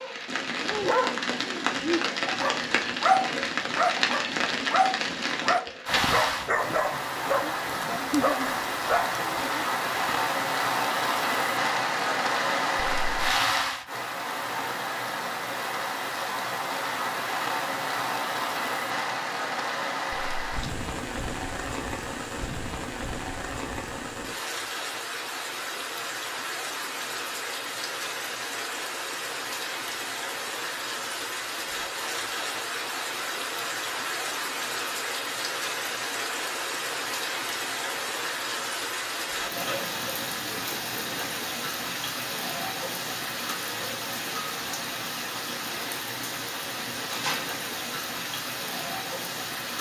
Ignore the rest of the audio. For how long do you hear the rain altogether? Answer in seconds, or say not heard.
50 s.